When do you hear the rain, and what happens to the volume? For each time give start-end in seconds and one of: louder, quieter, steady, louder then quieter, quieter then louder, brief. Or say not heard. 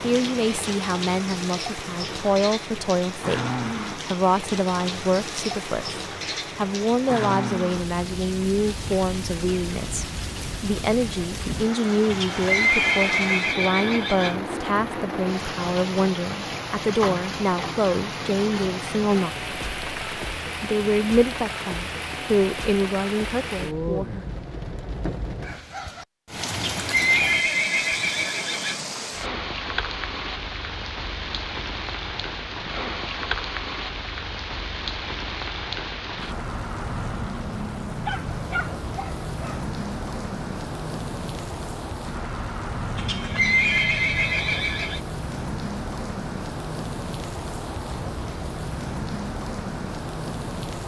0.0-50.8 steady.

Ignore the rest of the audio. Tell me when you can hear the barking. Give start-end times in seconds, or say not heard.
38.0-39.6.